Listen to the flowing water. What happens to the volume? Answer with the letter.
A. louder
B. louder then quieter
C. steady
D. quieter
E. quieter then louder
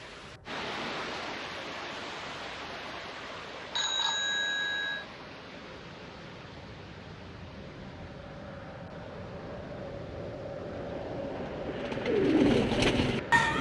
D.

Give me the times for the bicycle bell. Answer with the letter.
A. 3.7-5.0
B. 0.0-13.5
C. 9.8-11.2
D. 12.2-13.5
A.